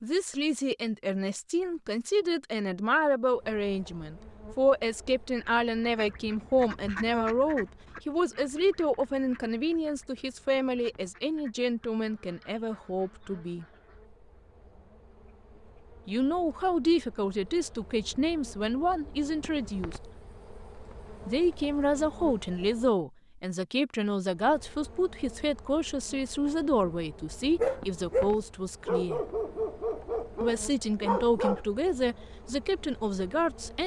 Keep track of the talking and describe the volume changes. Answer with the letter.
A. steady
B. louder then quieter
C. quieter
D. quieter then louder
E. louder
A.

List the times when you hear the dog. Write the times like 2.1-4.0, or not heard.
27.6-31.6.